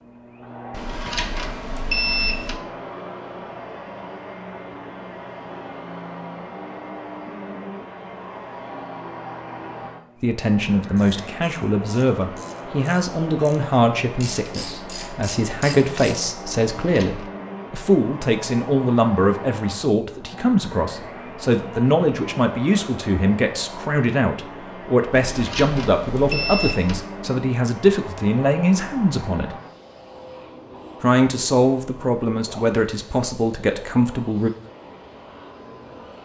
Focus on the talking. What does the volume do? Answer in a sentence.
The loudness of the talking stays about the same.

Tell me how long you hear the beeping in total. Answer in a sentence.
The beeping can be heard for 4 seconds in total.